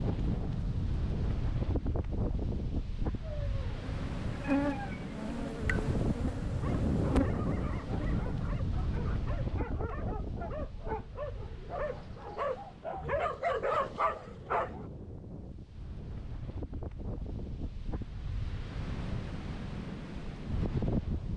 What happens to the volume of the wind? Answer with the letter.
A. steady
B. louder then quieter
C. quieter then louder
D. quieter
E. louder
C.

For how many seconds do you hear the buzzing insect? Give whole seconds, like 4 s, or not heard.
5 s.